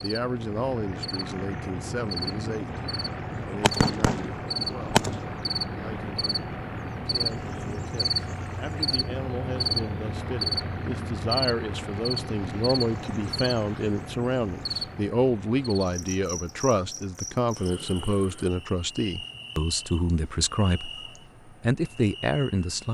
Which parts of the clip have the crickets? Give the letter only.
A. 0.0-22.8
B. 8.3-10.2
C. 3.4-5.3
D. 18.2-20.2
A.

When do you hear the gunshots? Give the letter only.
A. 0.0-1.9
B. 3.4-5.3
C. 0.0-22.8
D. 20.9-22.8
B.